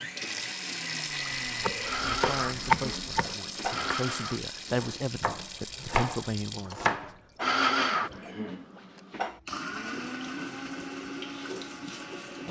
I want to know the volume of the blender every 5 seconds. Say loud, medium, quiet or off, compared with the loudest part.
medium, loud, medium.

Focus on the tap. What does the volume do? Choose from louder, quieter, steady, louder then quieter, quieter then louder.
quieter then louder.